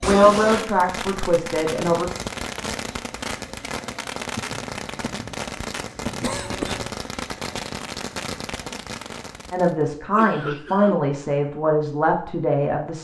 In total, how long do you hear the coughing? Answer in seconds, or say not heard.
2 s.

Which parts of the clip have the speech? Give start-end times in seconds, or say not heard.
0.0-2.1, 9.5-12.9.